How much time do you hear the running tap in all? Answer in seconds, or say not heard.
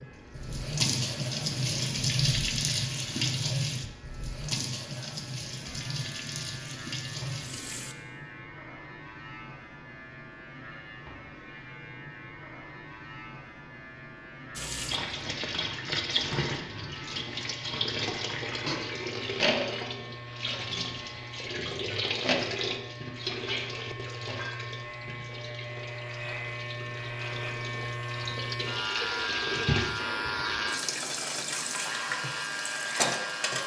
27 s.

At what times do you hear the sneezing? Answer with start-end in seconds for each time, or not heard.
not heard.